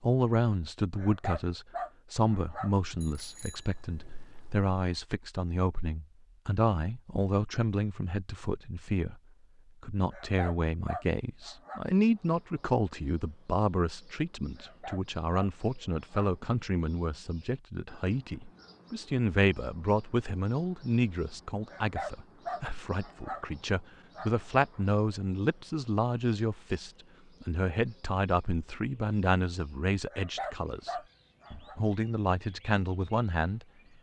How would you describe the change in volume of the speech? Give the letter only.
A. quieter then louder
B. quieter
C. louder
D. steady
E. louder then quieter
D.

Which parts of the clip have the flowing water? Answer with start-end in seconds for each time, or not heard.
not heard.